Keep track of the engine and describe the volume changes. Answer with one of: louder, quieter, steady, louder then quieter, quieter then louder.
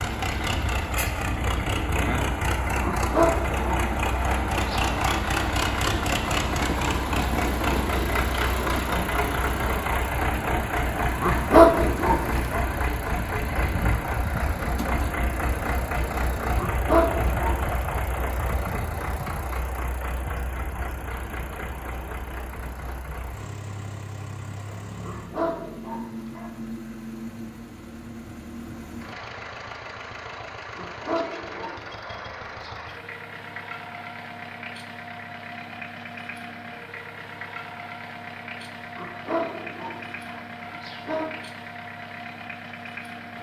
quieter.